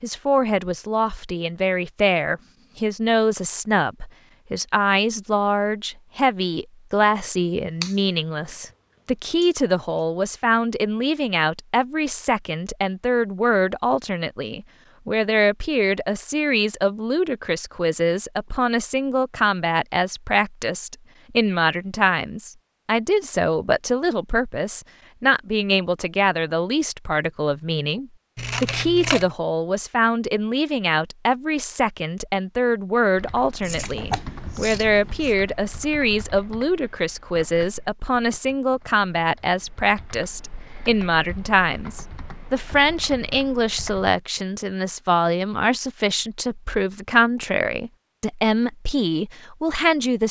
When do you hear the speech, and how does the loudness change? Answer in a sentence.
You can hear the speech from 0.0 to 50.2 s, at a steady volume.